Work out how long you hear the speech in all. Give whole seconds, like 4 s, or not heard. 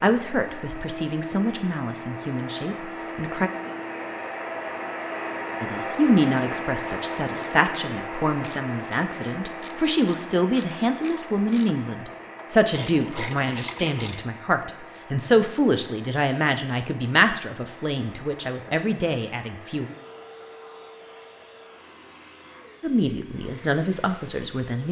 20 s.